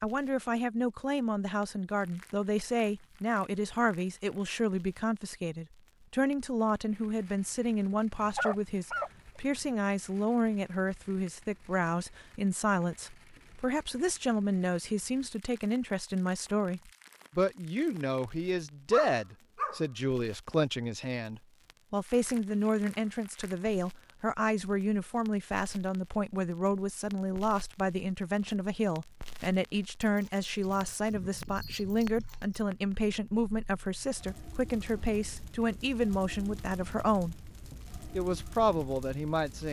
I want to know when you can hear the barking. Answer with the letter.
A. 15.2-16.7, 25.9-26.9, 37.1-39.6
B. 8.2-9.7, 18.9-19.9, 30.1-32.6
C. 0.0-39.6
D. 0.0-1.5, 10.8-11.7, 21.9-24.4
B.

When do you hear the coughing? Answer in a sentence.
You can't hear the coughing here.